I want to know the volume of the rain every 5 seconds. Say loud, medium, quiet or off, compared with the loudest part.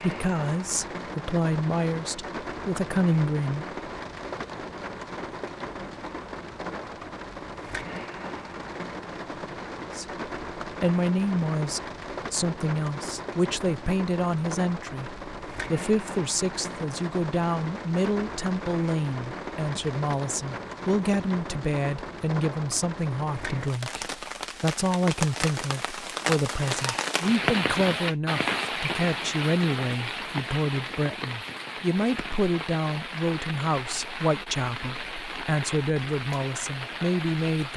medium, medium, medium, medium, medium, loud, medium, medium.